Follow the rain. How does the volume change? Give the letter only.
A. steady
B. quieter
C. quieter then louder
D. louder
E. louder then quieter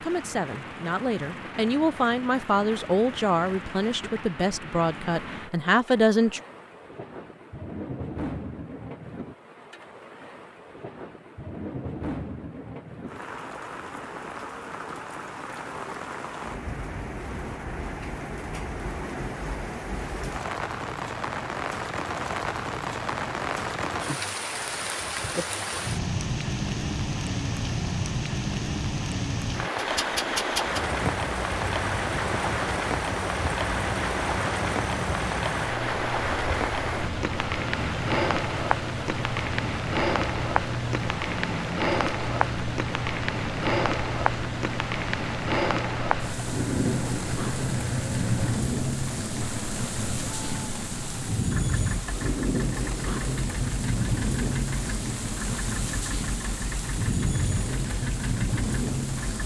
D.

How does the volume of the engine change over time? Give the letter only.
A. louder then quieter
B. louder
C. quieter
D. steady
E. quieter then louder
C.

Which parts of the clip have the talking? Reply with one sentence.
The talking can be heard from 0.0 to 6.4 s.